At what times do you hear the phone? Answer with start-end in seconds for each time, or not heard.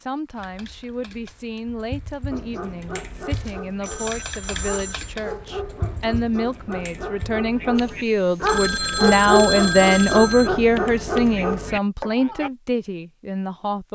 3.3-5.2, 8.4-10.5.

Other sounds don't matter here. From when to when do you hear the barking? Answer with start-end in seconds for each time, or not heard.
2.3-12.5.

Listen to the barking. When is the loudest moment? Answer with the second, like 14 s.
9 s.